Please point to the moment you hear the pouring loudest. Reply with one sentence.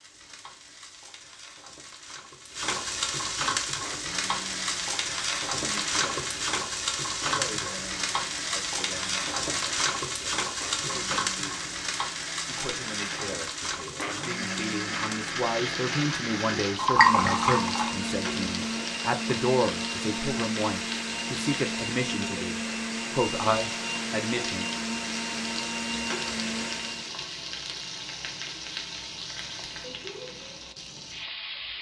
The loudest moment of the pouring is at 17 seconds.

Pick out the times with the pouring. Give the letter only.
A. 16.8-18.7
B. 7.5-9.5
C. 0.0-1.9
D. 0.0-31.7
A.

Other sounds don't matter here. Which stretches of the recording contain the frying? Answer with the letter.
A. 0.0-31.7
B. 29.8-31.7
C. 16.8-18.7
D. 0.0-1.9
A.